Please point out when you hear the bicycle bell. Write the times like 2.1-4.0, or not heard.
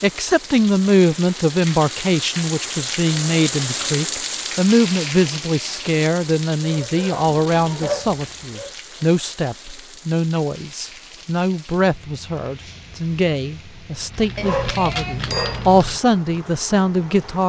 14.3-15.7.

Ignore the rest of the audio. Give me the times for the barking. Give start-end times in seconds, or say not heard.
6.6-8.7, 14.1-16.0.